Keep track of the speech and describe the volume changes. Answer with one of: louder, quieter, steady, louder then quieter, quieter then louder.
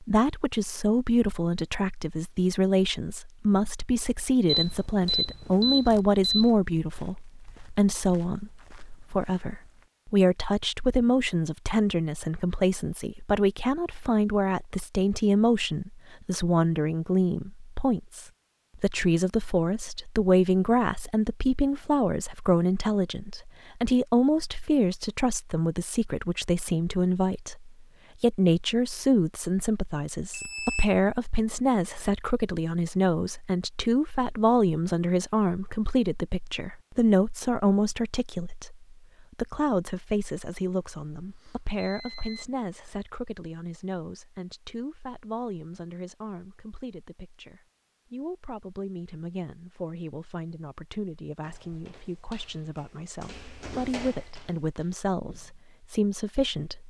quieter.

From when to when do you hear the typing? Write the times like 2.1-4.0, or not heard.
not heard.